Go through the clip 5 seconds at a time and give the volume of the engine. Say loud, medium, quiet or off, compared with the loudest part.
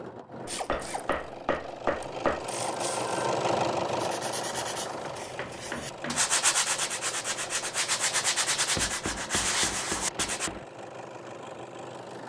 loud, medium, medium.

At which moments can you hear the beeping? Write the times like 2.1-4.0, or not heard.
not heard.